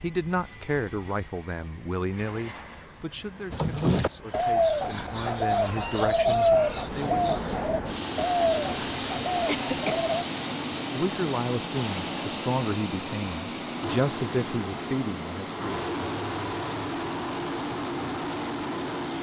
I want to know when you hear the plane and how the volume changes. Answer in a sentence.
You can hear the plane from 0.0 to 19.1 s, getting louder.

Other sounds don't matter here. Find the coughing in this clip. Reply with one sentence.
You can hear the coughing from 9.4 to 10.1 s.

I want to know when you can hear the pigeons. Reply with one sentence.
The pigeons can be heard from 3.5 to 10.2 s.